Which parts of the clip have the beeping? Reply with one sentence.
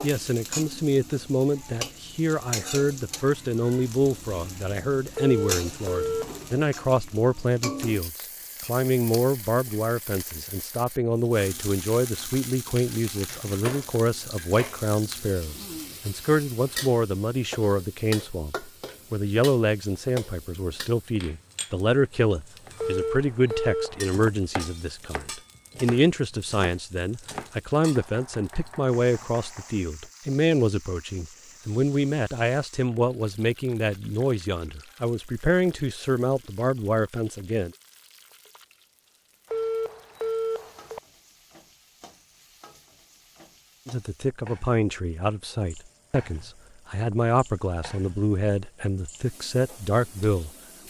You can hear the beeping from 5.2 to 6.6 s, from 22.8 to 24.2 s and from 39.5 to 41.0 s.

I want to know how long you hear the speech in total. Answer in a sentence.
You can hear the speech for 45 seconds altogether.